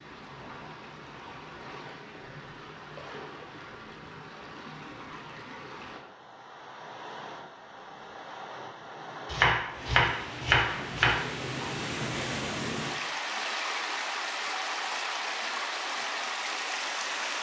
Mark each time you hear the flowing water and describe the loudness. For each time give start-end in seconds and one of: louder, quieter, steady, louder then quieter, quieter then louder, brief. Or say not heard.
0.0-17.3 louder.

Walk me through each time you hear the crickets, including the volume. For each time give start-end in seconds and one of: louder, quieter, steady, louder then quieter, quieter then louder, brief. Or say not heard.
not heard.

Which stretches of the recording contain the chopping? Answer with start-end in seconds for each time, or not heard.
9.2-11.7.